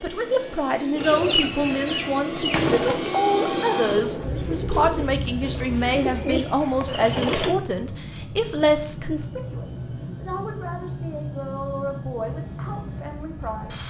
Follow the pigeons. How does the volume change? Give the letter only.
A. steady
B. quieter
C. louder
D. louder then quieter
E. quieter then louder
E.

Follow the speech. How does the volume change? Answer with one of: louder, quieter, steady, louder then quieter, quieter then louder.
quieter.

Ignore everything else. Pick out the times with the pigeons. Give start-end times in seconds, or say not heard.
0.9-7.5.